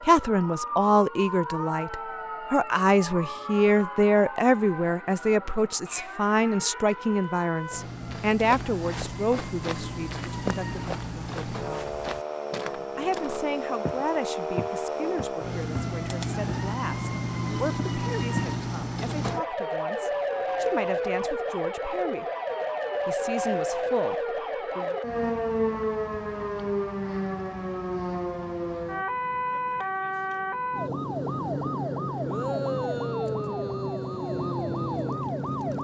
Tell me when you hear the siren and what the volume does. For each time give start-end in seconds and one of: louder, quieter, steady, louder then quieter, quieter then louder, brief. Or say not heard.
0.0-35.8 louder.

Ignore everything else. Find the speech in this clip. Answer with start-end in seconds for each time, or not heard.
0.0-11.8, 12.9-22.2, 23.1-24.9.